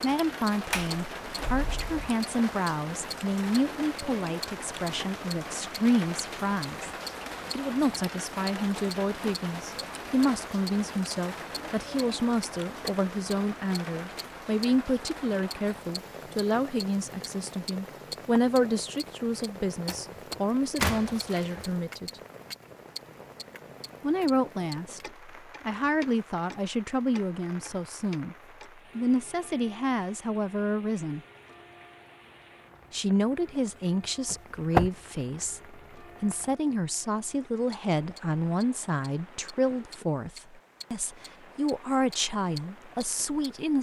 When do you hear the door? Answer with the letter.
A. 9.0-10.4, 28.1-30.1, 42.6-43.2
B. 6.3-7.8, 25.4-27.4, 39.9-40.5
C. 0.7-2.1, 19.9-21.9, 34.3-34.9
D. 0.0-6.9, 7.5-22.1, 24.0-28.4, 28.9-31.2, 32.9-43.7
C.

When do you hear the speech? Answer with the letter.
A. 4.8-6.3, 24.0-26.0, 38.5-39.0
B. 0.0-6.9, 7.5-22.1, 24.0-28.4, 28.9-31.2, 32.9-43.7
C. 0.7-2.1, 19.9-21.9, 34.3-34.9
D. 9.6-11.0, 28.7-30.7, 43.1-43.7
B.